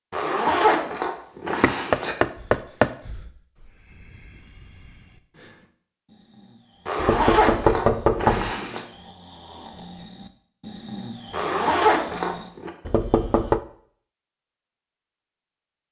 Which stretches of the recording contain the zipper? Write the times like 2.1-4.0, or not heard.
0.1-2.1, 6.8-8.8, 11.3-12.7.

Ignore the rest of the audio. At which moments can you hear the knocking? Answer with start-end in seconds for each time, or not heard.
1.6-2.9, 7.0-8.6, 12.8-13.6.